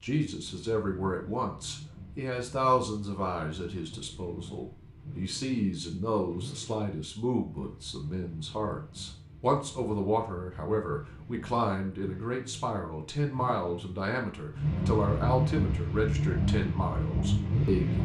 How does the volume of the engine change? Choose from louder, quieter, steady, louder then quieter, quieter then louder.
louder.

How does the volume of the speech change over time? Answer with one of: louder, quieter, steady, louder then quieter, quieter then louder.
steady.